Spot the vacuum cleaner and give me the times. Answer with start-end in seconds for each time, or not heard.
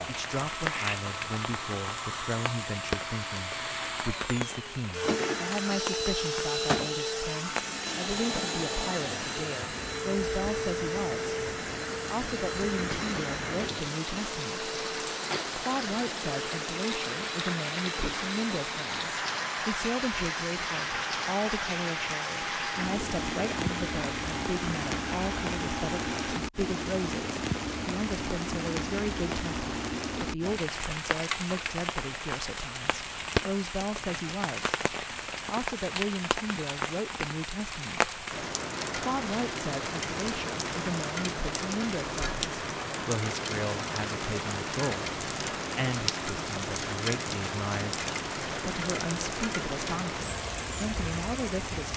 0.0-26.4.